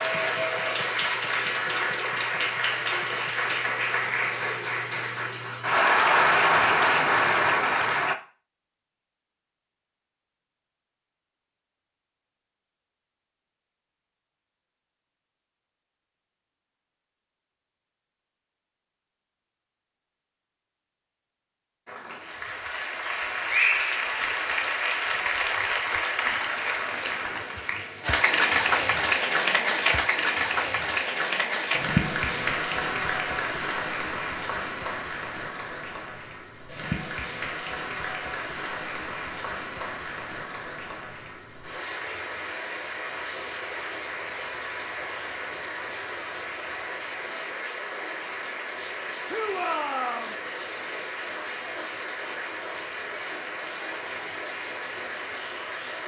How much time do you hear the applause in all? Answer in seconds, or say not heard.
42 s.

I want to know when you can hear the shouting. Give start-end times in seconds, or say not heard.
49.2-50.4.